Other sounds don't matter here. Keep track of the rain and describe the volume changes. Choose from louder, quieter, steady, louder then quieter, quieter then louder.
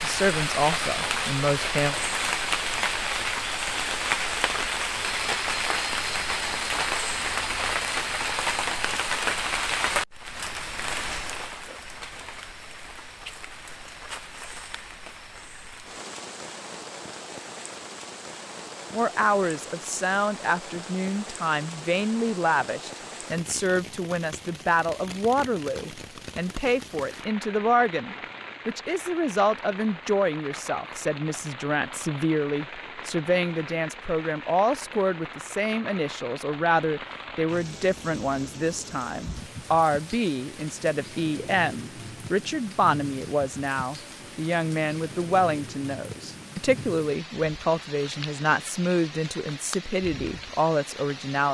quieter.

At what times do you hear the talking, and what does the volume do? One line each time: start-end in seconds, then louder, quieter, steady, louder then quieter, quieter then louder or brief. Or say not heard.
0.0-1.9 brief
18.9-51.4 steady.